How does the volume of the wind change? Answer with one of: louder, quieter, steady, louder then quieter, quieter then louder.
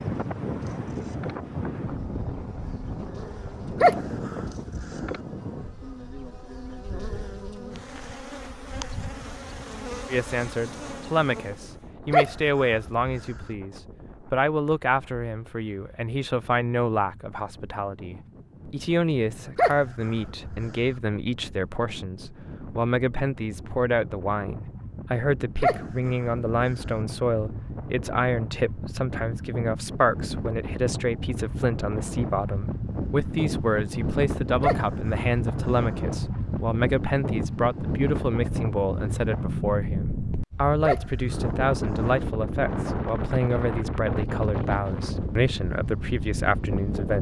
quieter then louder.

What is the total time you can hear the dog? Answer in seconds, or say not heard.
8 s.